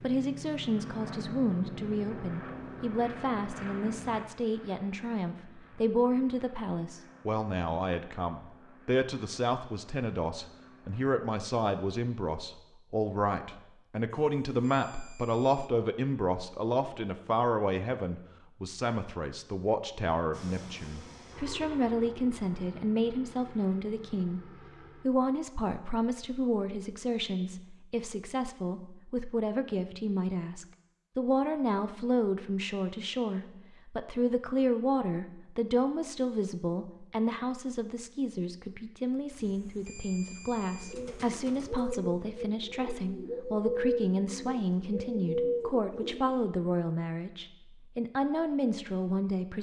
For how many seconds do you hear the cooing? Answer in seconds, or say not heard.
6 s.